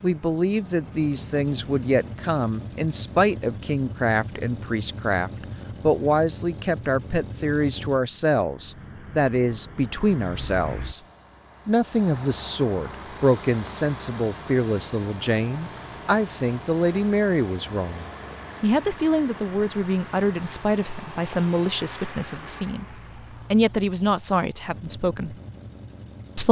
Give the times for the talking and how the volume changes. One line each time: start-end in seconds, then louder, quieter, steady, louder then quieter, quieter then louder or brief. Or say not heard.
0.0-11.0 steady
11.7-22.9 steady
23.5-25.4 brief.